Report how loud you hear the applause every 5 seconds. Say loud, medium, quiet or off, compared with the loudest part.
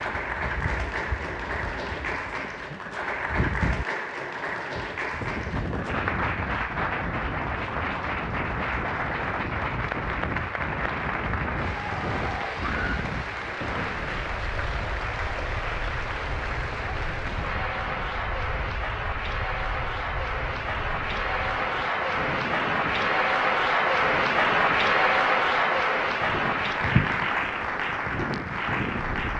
medium, medium, medium, medium, loud, loud.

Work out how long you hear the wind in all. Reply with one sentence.
The wind can be heard for 29 seconds in total.